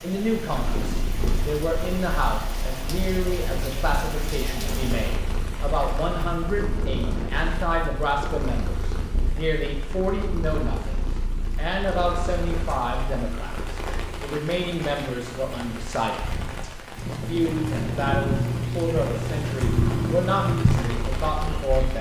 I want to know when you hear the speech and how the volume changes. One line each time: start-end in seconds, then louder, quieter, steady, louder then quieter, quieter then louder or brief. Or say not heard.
0.0-21.9 steady.